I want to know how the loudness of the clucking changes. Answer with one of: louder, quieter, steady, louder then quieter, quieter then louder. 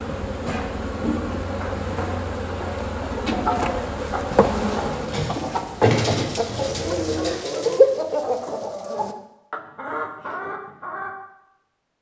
louder then quieter.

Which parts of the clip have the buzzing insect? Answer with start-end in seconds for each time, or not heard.
0.0-7.4.